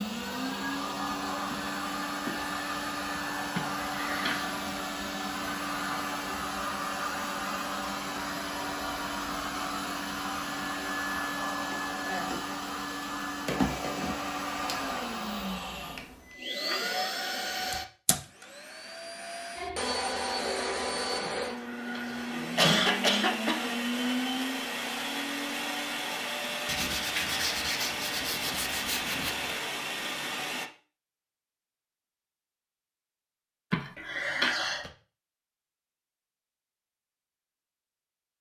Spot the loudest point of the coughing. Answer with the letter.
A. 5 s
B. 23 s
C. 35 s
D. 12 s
B.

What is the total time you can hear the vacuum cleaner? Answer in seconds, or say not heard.
31 s.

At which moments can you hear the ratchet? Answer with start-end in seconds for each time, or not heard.
not heard.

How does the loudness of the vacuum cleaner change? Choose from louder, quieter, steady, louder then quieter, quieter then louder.
steady.